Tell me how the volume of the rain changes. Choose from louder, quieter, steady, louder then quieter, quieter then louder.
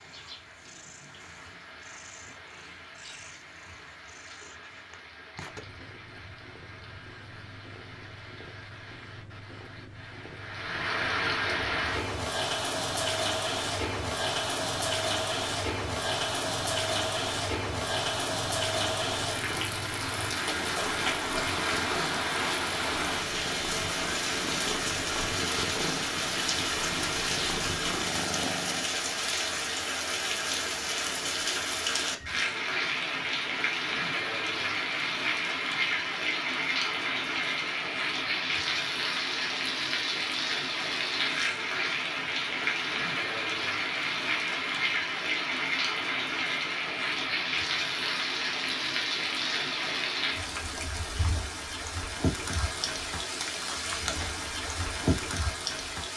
louder.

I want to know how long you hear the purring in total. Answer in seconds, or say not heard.
29 s.